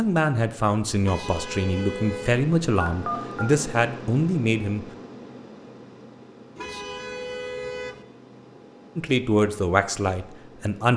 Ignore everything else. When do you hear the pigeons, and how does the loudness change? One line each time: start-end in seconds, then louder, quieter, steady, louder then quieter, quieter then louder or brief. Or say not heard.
not heard.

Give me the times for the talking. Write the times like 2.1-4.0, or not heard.
0.0-4.8, 8.9-10.9.